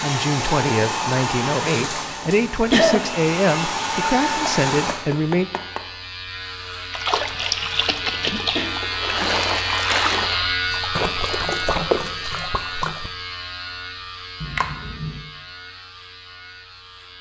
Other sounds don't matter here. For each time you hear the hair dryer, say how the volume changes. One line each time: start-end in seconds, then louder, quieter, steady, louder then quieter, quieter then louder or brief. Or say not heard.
0.0-5.0 quieter then louder.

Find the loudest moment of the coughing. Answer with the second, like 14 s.
3 s.